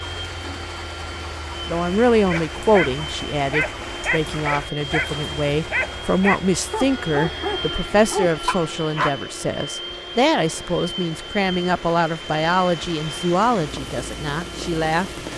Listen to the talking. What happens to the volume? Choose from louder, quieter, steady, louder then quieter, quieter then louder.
steady.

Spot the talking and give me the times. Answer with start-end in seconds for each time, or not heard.
1.6-15.1.